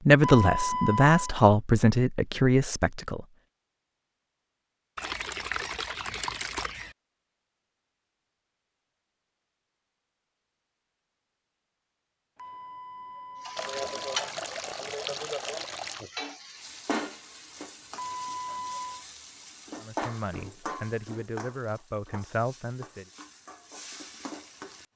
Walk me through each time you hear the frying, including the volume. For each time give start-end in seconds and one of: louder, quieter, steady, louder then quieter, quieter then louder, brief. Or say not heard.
13.4-24.9 quieter.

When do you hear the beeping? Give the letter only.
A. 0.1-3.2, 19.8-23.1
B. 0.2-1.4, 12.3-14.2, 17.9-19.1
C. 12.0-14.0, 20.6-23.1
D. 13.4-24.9
B.